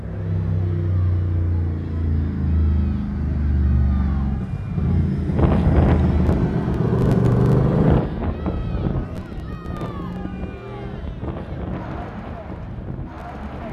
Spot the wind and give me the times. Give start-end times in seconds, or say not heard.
5.3-13.6.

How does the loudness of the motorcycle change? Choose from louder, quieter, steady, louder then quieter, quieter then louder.
louder then quieter.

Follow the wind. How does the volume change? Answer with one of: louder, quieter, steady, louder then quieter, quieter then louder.
quieter.